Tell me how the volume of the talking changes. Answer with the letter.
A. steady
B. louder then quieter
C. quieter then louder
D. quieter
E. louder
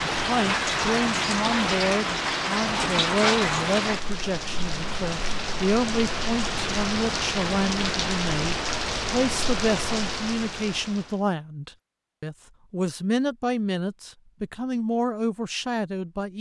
A.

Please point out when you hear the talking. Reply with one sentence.
The talking can be heard from 0.1 to 16.3 s.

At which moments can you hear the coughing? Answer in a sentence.
The coughing can't be heard in this clip.